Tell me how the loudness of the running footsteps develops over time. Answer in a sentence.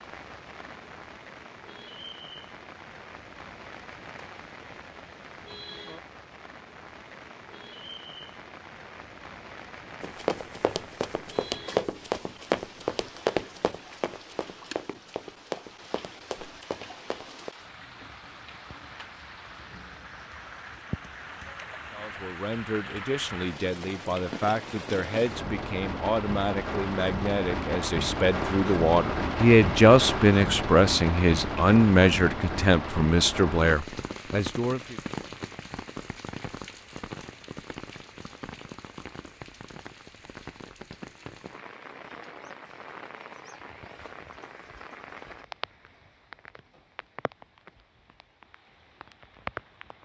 The loudness of the running footsteps goes up, then down.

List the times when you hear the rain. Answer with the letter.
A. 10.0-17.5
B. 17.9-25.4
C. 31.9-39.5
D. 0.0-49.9
D.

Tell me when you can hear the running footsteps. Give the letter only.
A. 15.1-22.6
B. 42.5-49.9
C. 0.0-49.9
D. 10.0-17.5
D.